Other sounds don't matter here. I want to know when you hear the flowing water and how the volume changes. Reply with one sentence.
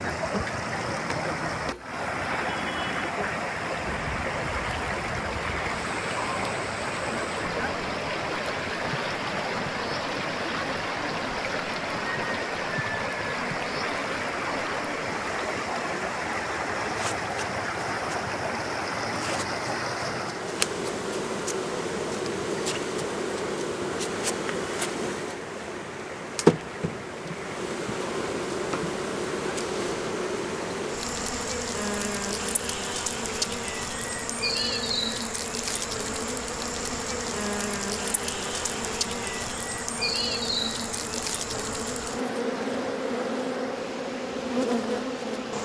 You can hear the flowing water from 0.0 to 45.5 s, getting quieter.